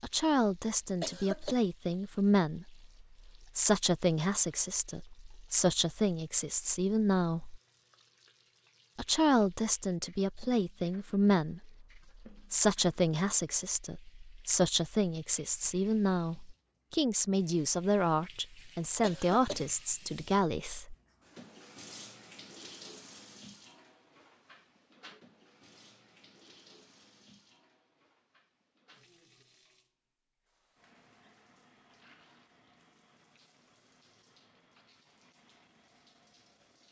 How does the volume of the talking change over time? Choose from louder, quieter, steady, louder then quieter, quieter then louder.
steady.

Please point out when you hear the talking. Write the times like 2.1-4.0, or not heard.
0.0-7.6, 8.9-20.9.